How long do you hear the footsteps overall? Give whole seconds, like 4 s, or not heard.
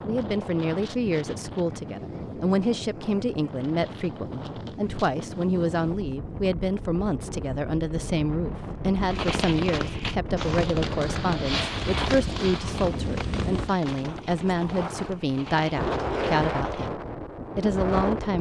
not heard.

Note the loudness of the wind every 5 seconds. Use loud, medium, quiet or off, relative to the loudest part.
medium, medium, loud, loud.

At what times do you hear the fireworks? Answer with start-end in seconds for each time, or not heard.
9.1-16.9.